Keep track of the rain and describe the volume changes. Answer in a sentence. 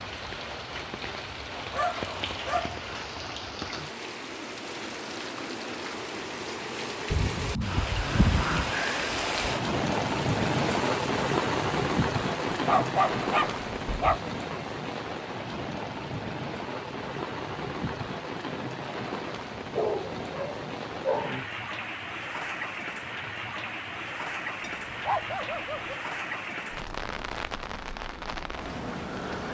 The loudness of the rain goes up, then down.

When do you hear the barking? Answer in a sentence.
The barking can be heard from 1.7 to 2.8 s, from 7.1 to 8.8 s, from 12.5 to 14.2 s, from 19.8 to 21.4 s and from 24.9 to 25.9 s.